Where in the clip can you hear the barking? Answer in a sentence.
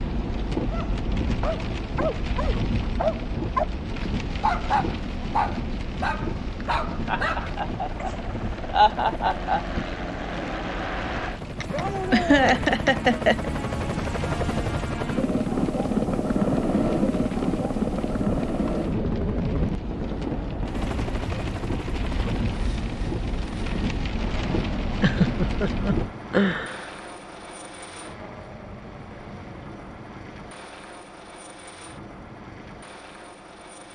The barking can be heard from 0.7 to 8.2 s.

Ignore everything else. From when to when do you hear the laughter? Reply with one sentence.
The laughter can be heard from 7.0 to 9.7 s, from 11.6 to 13.4 s and from 25.0 to 26.9 s.